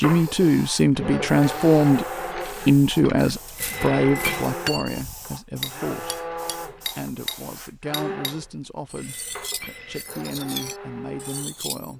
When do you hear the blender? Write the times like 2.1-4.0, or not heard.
0.0-11.8.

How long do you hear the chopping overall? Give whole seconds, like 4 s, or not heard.
not heard.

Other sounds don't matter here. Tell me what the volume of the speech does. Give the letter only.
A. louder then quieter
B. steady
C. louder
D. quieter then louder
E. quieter
E.